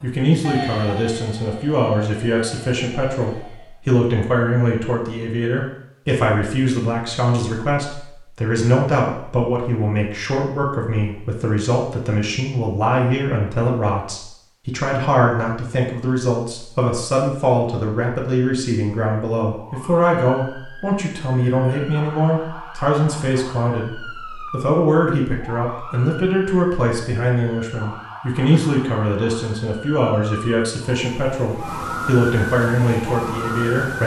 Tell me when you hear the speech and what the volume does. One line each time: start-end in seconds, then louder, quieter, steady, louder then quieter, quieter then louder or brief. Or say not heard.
0.0-34.0 steady.